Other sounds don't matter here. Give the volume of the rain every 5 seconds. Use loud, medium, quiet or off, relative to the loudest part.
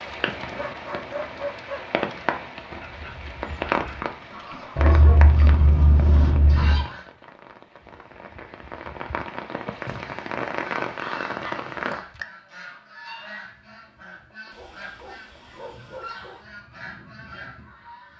loud, medium, loud, off.